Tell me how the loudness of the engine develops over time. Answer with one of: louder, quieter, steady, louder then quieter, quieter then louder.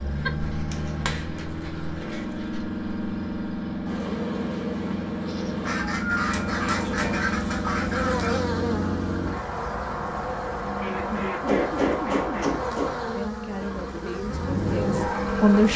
steady.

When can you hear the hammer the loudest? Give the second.
12 s.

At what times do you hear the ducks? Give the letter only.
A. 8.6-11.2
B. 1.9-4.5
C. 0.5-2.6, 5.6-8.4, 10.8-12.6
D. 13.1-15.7
C.